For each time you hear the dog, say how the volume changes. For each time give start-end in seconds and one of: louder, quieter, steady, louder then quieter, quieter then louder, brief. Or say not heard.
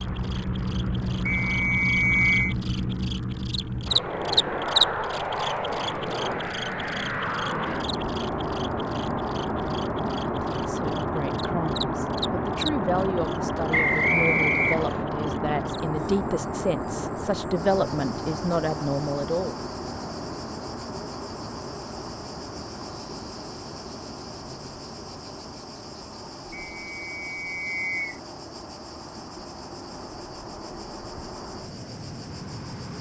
not heard.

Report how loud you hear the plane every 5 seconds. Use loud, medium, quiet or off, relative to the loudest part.
loud, loud, loud, loud, medium, quiet, medium.